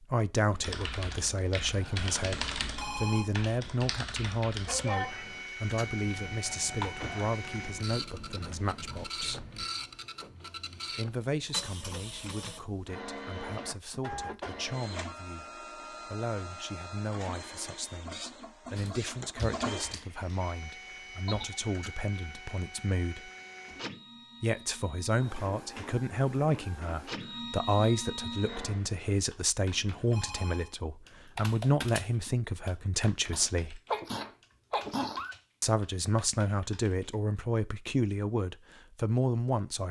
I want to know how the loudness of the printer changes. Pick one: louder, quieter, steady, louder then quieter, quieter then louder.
steady.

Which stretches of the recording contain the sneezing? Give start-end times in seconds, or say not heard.
4.7-5.2, 21.2-21.9, 33.3-35.4.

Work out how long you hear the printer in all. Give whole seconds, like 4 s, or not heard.
24 s.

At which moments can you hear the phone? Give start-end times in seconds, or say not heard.
2.4-3.2, 29.8-30.7.